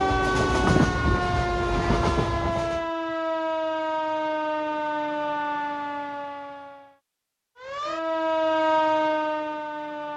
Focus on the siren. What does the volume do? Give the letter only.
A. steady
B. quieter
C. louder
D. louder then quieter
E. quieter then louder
E.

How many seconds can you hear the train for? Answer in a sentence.
You can hear the train for 3 seconds altogether.